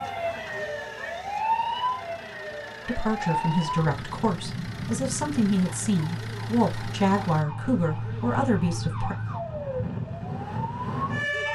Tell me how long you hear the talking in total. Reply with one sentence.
You can hear the talking for 6 seconds altogether.